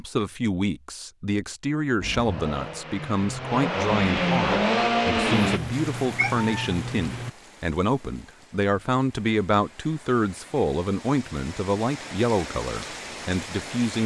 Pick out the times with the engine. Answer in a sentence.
The engine can be heard from 2.0 to 5.6 s.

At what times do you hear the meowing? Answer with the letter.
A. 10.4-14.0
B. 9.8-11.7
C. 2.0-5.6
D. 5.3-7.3
D.